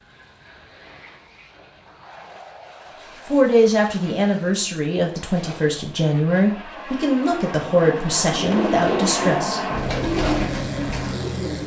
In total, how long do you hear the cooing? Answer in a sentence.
The cooing can be heard for 4 seconds in total.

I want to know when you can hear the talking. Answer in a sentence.
The talking can be heard from 3.2 to 9.6 s.